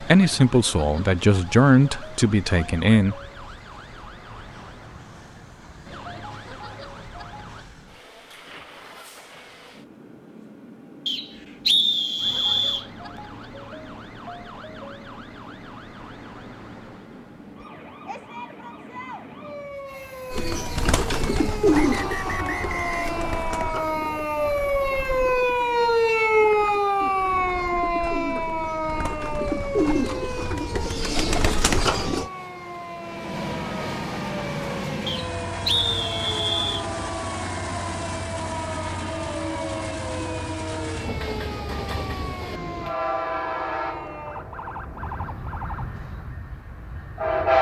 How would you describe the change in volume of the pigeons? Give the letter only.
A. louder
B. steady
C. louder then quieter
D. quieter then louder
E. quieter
D.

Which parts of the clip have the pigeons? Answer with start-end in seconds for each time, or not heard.
20.3-32.3.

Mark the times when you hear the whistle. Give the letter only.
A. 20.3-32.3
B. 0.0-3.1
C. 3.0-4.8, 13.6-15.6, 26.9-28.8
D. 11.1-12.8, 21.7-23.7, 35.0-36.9
D.